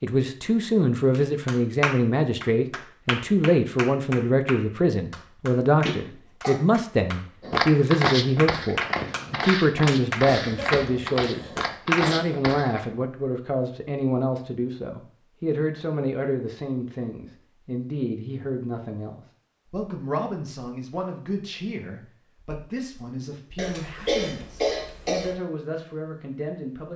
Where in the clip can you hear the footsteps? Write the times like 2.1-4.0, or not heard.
7.4-12.8.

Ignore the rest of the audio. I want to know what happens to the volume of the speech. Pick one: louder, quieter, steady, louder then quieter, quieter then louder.
quieter.